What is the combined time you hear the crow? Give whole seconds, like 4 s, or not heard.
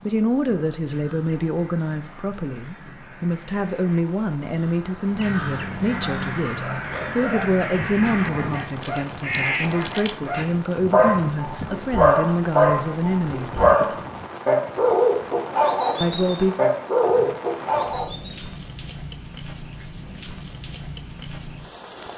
10 s.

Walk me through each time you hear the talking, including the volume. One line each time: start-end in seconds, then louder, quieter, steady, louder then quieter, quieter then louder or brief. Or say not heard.
0.0-13.5 steady
16.0-16.6 brief.